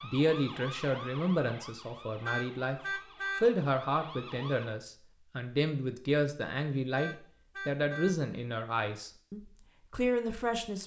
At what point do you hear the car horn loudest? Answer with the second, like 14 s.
3 s.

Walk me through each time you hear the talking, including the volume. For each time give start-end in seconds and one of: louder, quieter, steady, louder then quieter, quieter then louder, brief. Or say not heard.
0.0-10.8 steady.